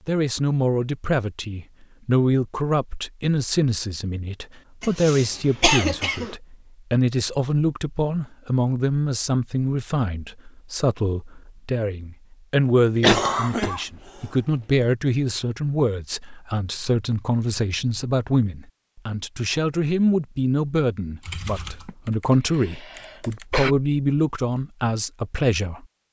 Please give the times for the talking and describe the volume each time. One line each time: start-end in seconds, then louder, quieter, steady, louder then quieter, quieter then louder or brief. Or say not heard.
0.1-25.9 steady.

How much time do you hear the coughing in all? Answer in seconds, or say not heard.
4 s.